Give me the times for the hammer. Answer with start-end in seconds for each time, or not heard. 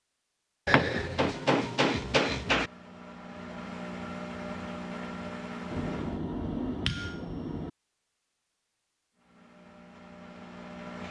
0.7-2.7, 5.7-7.7.